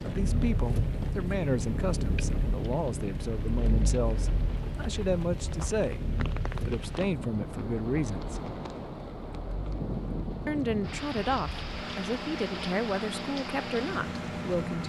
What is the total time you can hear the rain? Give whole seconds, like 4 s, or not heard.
15 s.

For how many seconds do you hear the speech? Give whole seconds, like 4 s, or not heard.
12 s.